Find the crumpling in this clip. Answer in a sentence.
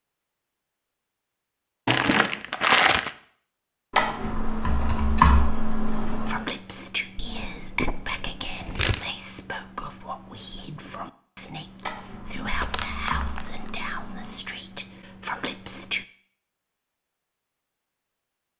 You can hear the crumpling from 1.9 to 3.1 s, from 7.2 to 9.1 s and from 12.6 to 13.8 s.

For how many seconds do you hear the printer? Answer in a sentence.
You can't hear the printer here.